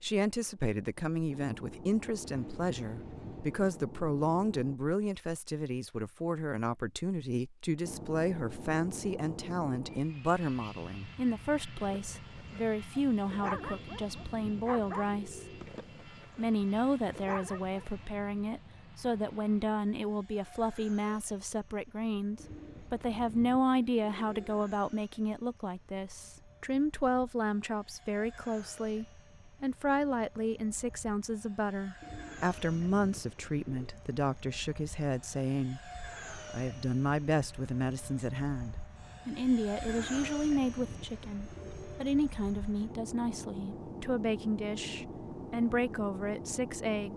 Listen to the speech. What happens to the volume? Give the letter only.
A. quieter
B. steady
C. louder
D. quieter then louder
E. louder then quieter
B.